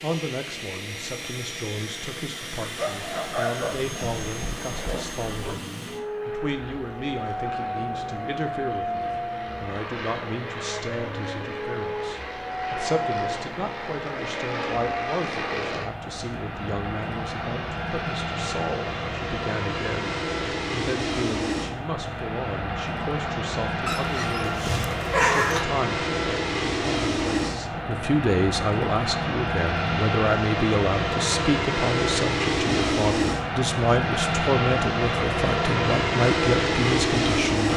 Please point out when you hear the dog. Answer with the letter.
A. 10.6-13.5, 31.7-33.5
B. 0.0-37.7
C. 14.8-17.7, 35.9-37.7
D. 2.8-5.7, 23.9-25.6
D.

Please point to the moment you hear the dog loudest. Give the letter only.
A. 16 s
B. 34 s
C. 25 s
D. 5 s
C.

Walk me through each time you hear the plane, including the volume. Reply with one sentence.
You can hear the plane from 0.0 to 37.7 s, getting louder.